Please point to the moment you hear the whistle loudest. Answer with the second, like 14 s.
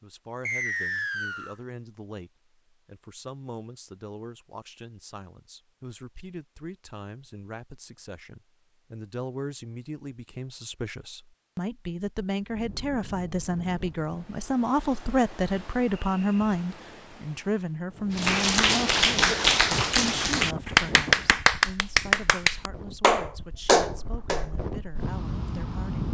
1 s.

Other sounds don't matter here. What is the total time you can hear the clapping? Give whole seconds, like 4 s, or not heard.
6 s.